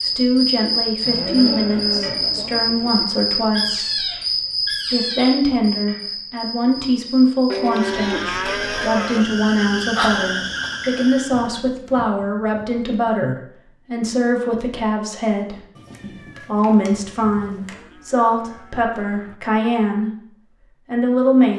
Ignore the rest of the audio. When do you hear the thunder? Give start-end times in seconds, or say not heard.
not heard.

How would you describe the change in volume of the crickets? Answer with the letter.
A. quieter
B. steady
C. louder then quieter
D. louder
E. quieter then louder
E.